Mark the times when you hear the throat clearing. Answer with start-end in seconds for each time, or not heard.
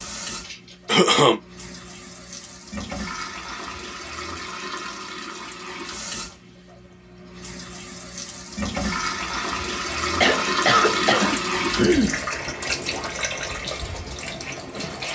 0.5-1.4, 10.2-12.2.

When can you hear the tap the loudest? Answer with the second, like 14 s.
11 s.